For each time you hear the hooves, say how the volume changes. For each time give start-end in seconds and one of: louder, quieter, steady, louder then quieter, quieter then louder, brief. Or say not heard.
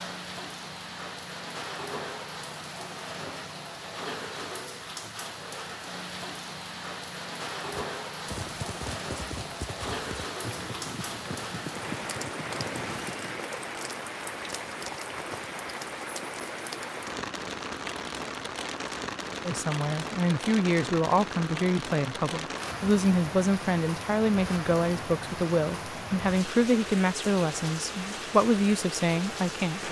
7.7-13.4 steady.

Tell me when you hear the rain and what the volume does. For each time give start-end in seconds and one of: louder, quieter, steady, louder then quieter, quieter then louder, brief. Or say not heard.
0.0-29.8 steady.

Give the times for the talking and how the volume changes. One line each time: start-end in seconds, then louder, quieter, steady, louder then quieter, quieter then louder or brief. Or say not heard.
19.4-29.8 steady.